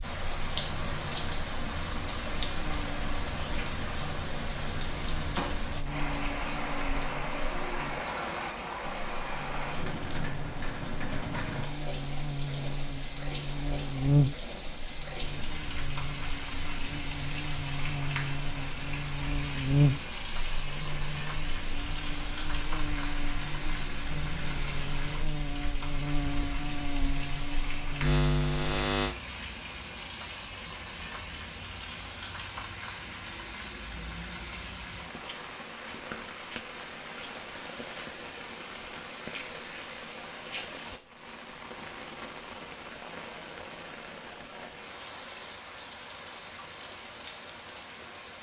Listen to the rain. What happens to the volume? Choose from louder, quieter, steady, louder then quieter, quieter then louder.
quieter.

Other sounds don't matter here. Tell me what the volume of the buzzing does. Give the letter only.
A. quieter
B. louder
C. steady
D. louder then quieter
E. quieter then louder
B.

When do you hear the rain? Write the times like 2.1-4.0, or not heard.
0.0-48.3.